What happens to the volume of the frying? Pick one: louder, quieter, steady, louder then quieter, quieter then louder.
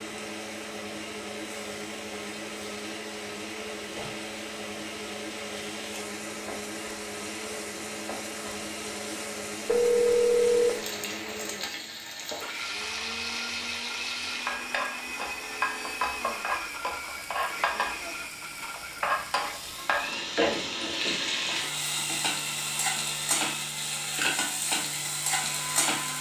louder.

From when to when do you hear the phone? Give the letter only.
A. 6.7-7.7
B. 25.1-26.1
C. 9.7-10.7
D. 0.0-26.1
C.